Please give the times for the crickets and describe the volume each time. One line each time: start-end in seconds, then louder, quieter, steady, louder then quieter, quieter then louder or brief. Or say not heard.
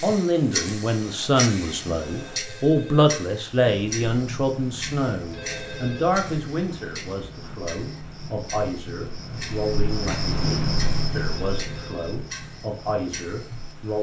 3.6-13.9 louder then quieter.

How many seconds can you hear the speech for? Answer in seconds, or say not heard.
14 s.